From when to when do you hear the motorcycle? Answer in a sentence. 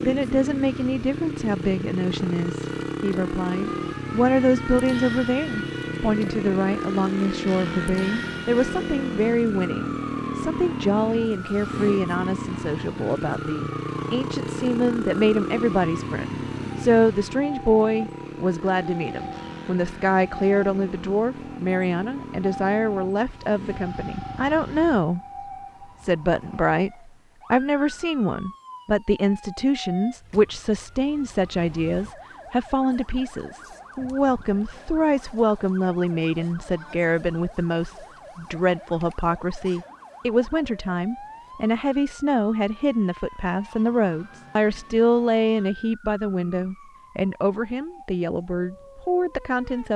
The motorcycle can be heard from 0.0 to 25.1 s.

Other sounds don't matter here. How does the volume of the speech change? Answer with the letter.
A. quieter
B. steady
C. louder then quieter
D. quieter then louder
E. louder
B.